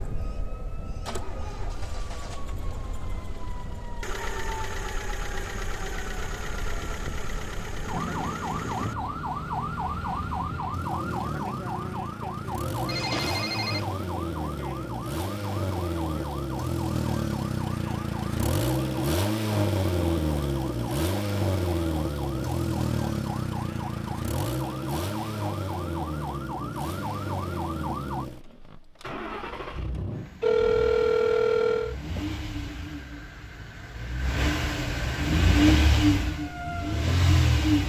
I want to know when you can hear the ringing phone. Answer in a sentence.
You can hear the ringing phone from 12.8 to 13.9 s and from 30.4 to 31.9 s.